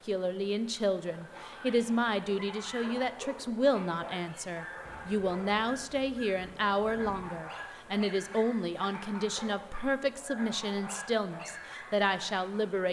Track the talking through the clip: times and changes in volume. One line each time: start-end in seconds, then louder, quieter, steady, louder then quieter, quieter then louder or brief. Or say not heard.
0.1-12.8 steady.